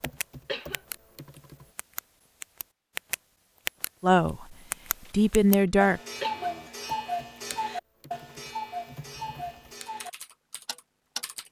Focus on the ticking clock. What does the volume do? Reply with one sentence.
The volume of the ticking clock goes up, then down.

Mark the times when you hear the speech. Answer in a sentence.
You can hear the speech from 4.0 to 6.0 s.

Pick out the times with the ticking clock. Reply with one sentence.
The ticking clock can be heard from 0.0 to 11.2 s.